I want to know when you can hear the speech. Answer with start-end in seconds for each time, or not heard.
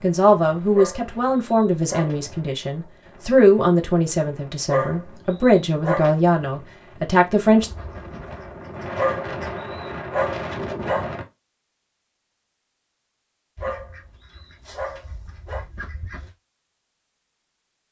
0.0-7.7.